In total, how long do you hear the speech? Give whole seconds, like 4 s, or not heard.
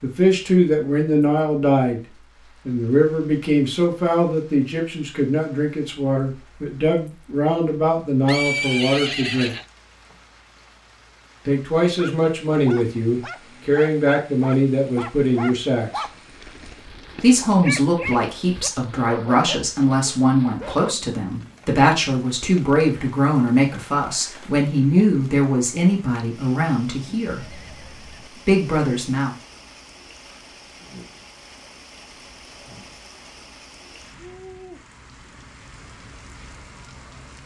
25 s.